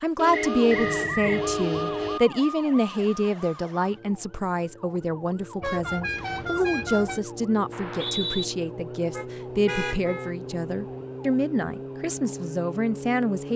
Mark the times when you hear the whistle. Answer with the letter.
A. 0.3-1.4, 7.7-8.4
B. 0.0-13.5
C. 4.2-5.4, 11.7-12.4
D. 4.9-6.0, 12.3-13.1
A.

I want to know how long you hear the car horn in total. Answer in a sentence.
The car horn can be heard for 5 seconds in total.